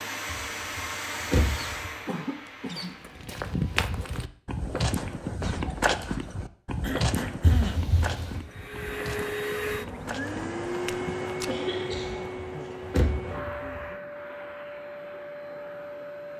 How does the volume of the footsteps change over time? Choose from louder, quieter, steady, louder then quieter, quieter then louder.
quieter.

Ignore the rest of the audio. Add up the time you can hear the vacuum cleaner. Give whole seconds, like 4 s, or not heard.
11 s.